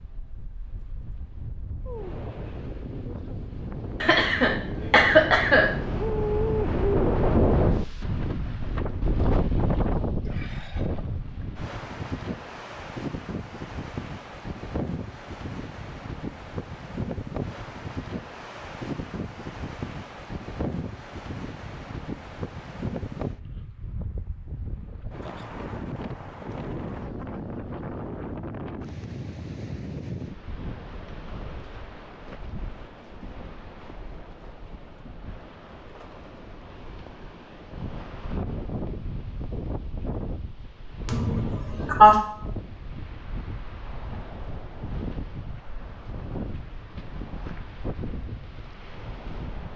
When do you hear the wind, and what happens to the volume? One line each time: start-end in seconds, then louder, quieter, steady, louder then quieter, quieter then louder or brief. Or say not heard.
0.0-49.7 quieter.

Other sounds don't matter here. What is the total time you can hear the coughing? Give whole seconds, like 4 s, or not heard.
3 s.